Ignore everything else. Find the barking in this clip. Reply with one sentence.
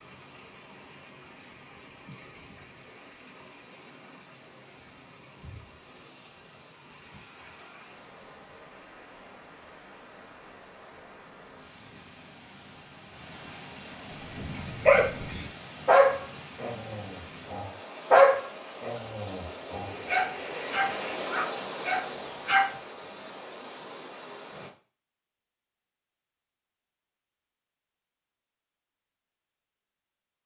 The barking can be heard from 14.3 to 22.8 s.